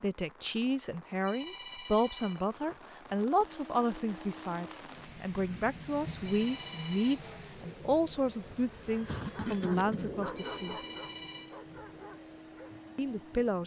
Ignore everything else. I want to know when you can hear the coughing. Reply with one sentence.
The coughing can be heard from 9.1 to 10.2 s.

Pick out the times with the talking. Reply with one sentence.
The talking can be heard from 0.0 to 10.8 s and from 12.9 to 13.6 s.